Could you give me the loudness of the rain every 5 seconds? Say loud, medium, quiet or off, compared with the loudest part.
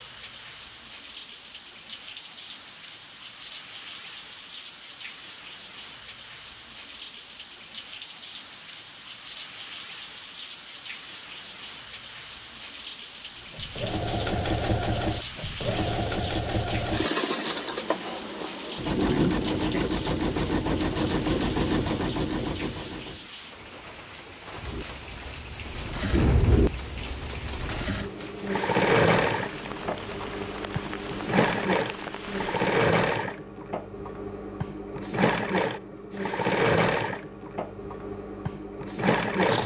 loud, loud, loud, loud, loud, loud, loud, off.